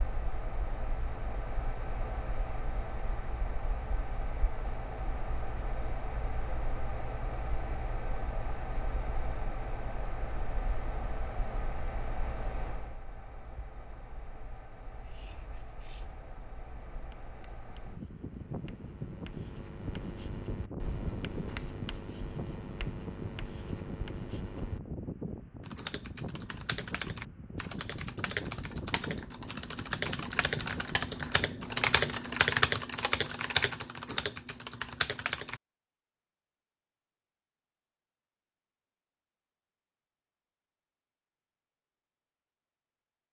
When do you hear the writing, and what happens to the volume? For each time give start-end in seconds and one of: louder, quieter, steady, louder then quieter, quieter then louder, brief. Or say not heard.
15.0-24.8 louder.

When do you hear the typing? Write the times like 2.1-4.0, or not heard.
25.6-35.6.